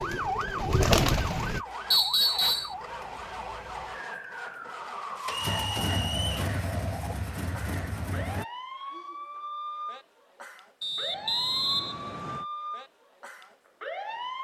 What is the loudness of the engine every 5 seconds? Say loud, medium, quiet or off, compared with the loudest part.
medium, loud, off.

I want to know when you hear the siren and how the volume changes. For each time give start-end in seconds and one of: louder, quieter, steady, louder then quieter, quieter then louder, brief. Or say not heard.
0.0-14.3 steady.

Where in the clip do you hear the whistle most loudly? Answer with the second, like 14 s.
2 s.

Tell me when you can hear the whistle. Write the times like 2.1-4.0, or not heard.
1.9-2.8, 5.5-6.3, 10.8-12.4.